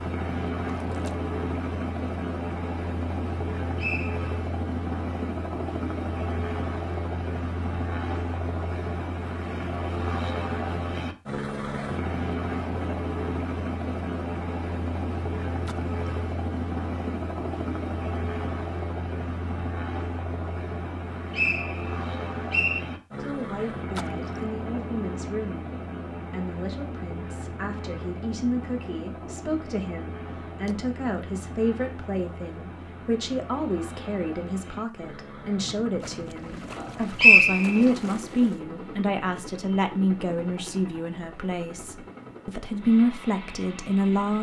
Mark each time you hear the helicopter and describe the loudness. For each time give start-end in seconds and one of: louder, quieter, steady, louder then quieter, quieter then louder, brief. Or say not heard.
0.0-44.3 quieter.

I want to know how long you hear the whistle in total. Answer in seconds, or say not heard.
3 s.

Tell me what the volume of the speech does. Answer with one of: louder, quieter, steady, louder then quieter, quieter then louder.
louder.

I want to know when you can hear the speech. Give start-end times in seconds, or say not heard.
23.2-44.3.